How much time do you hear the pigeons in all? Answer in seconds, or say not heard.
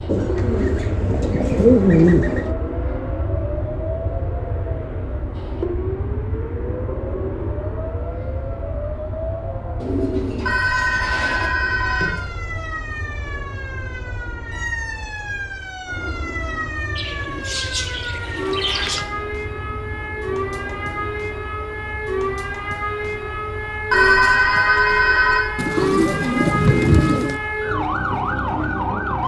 8 s.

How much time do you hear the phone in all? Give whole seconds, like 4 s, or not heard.
3 s.